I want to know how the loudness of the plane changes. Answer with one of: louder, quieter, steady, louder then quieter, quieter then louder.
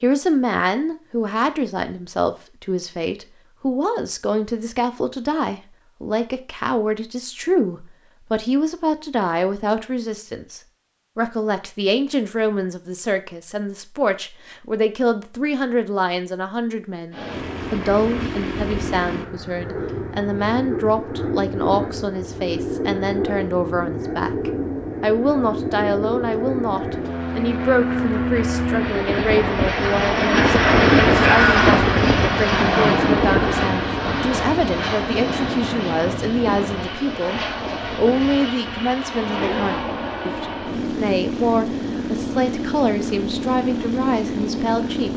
louder then quieter.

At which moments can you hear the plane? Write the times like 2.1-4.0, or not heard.
17.1-45.1.